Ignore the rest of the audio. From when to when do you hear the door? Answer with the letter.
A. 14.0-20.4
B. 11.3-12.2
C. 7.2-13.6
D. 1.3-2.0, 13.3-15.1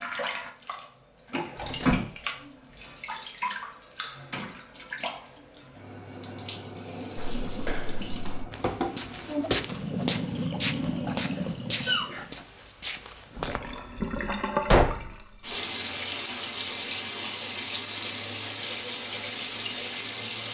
D.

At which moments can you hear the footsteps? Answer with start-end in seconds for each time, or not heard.
7.2-13.6.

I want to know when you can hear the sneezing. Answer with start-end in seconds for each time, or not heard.
11.3-12.2.